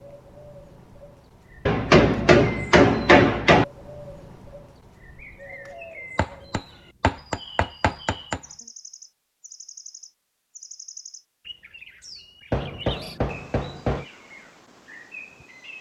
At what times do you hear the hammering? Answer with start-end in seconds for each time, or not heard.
1.6-3.6, 6.2-8.4, 12.5-14.1.